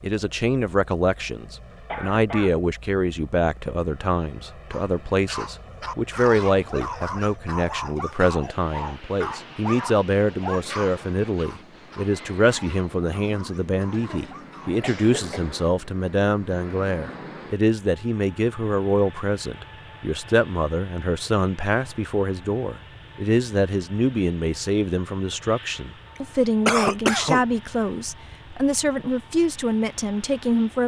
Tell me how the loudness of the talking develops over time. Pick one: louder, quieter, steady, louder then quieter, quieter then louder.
steady.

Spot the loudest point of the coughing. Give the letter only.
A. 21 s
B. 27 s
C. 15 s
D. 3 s
B.